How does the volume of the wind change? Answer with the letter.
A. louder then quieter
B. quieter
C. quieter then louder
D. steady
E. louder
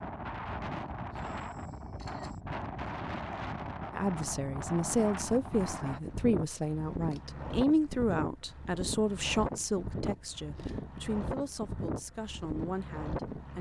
D.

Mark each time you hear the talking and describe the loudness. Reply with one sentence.
The talking can be heard from 3.9 to 13.5 s, getting quieter.